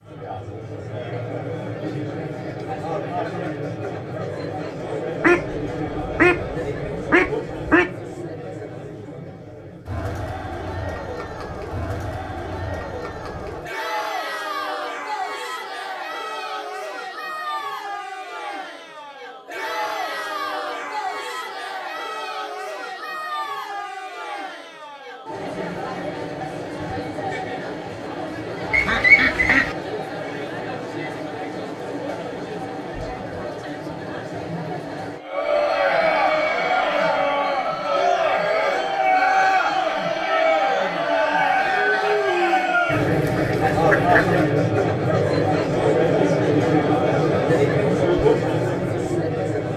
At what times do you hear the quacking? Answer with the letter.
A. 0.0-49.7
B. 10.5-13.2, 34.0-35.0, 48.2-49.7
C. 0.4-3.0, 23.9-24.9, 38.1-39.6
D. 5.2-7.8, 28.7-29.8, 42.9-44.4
D.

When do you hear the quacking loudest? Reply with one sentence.
The volume of the quacking peaks at 29 seconds.